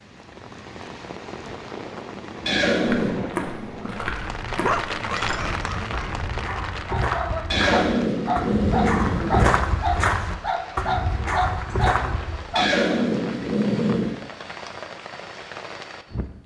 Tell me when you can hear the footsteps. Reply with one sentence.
The footsteps can be heard from 2.9 to 12.4 s.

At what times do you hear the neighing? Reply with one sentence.
You can hear the neighing from 2.5 to 3.2 s, from 7.5 to 9.5 s and from 12.6 to 14.2 s.